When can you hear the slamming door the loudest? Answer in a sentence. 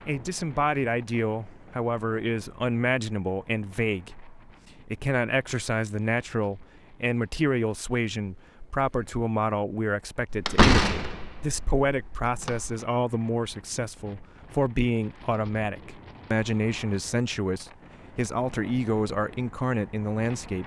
The volume of the slamming door peaks at 11 seconds.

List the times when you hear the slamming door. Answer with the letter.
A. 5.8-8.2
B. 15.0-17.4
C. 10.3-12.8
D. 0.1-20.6
C.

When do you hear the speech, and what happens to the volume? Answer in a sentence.
The speech can be heard from 0.1 to 20.6 s, at a steady volume.